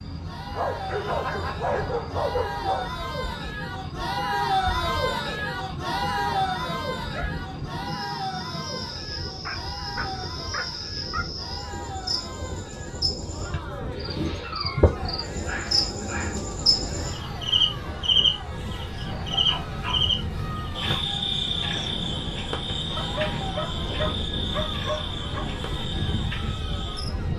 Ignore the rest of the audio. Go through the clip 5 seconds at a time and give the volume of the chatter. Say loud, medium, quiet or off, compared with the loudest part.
loud, loud, medium, medium, medium, medium.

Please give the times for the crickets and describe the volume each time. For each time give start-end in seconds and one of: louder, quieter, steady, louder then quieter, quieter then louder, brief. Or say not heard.
0.0-27.1 louder then quieter.